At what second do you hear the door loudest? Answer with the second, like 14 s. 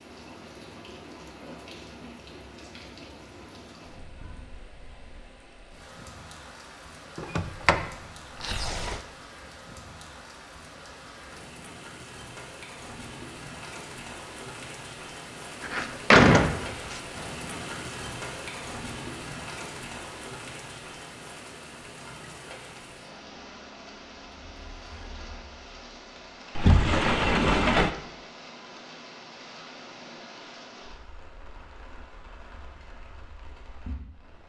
16 s.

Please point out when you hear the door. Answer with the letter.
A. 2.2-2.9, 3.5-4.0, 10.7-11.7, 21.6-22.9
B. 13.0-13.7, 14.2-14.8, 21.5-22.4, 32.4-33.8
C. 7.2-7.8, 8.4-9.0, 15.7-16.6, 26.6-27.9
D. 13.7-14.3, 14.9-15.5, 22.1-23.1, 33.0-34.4
C.